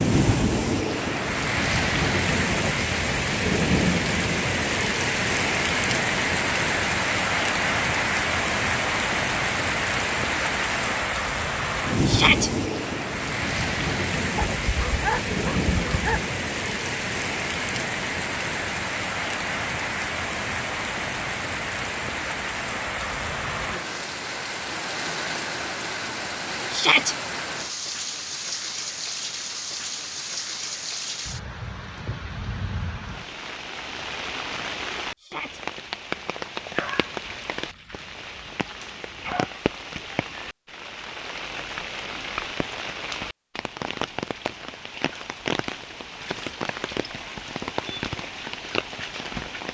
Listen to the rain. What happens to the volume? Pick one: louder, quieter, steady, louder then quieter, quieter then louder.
quieter.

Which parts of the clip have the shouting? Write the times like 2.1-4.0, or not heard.
12.1-12.5, 26.7-27.1, 35.1-35.6.